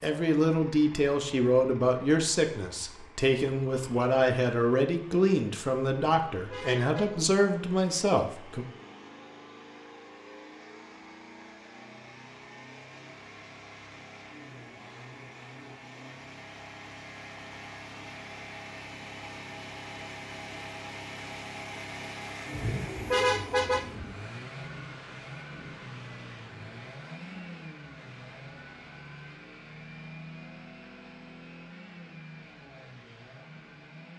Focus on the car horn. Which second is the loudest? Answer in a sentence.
The volume of the car horn peaks at 23 seconds.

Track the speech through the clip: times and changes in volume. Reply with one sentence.
The speech can be heard from 0.0 to 8.7 s, at a steady volume.